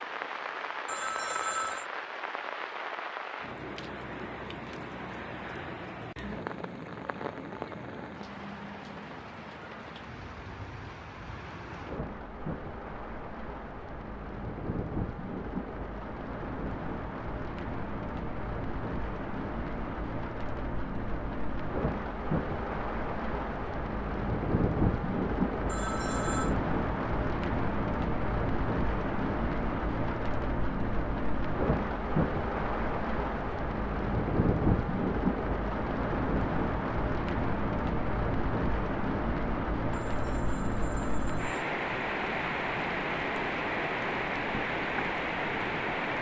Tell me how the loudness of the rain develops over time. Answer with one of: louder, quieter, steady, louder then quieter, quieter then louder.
louder.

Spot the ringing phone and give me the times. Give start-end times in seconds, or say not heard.
0.8-1.9, 25.6-26.6, 40.0-41.5.